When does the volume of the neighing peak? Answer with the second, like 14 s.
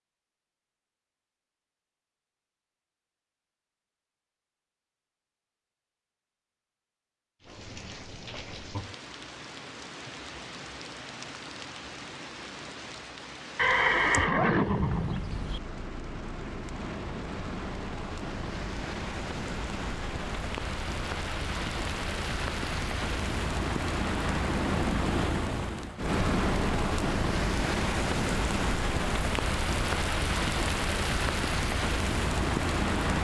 14 s.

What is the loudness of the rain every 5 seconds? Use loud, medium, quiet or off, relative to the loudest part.
off, quiet, quiet, medium, loud, loud, loud.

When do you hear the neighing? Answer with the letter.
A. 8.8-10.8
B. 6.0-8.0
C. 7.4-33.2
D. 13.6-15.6
D.